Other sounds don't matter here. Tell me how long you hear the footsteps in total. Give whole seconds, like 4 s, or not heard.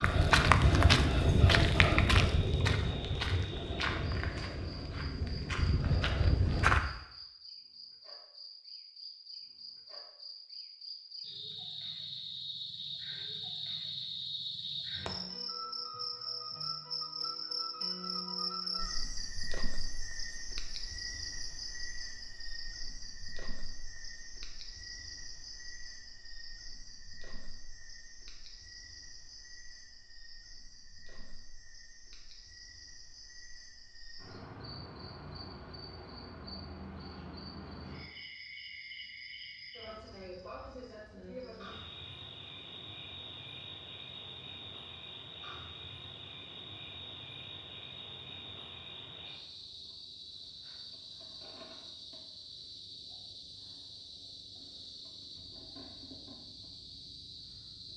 7 s.